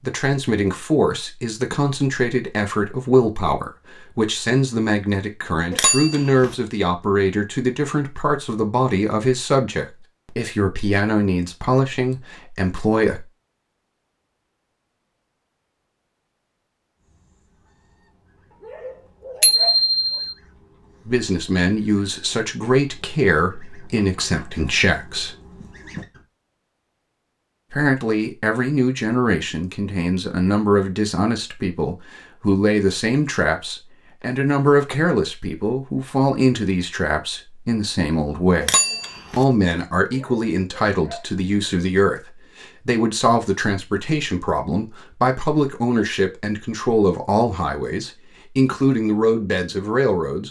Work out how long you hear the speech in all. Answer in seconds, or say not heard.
40 s.